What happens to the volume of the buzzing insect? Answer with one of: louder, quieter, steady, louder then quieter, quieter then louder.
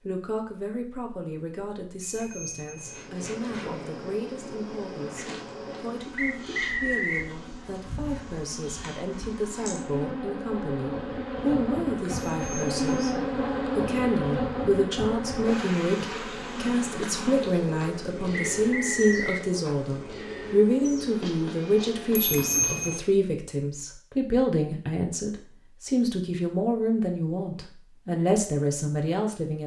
louder then quieter.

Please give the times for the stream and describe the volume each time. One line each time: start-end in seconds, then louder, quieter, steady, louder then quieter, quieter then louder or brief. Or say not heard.
not heard.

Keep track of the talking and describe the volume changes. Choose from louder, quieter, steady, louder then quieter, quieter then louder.
louder.